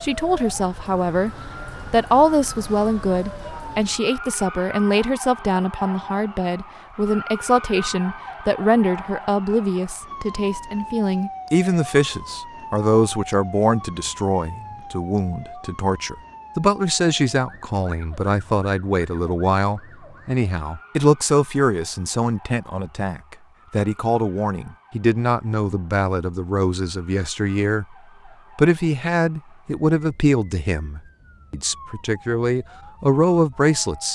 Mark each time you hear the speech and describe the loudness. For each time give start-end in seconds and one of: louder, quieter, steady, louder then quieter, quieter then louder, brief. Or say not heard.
0.0-1.3 brief
1.9-27.9 steady
28.6-34.0 quieter then louder.